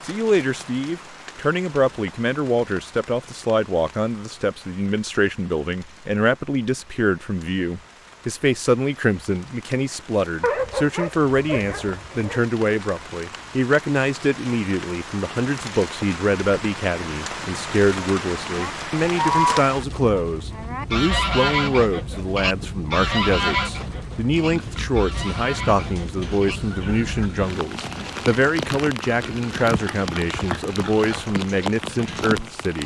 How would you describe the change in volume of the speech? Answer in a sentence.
The loudness of the speech stays about the same.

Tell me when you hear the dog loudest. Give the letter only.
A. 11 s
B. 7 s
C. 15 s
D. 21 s
A.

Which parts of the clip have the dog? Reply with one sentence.
You can hear the dog from 10.4 to 12.4 s.